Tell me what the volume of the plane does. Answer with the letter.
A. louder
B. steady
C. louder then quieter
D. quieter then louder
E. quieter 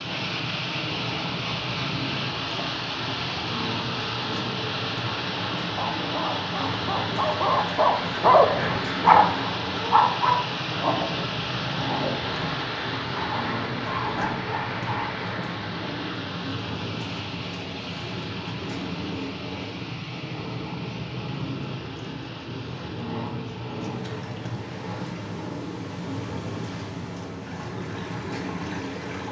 B.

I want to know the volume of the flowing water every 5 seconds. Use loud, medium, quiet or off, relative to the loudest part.
loud, loud, loud, medium, quiet, medium.